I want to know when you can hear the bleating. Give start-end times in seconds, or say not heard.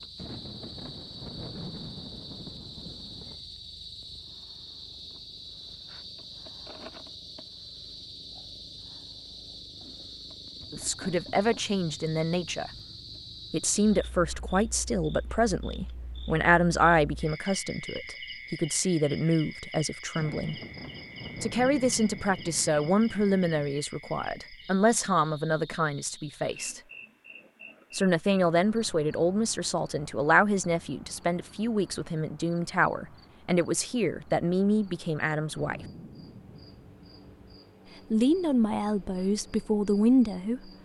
not heard.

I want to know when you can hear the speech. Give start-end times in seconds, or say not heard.
10.7-12.7, 13.5-20.6, 21.4-26.8, 27.9-35.8, 38.1-40.7.